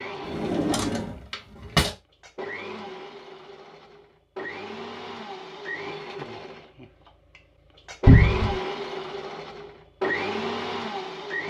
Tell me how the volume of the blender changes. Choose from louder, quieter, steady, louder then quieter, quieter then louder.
louder.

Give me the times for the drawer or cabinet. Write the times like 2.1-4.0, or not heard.
0.2-1.9, 8.1-8.6.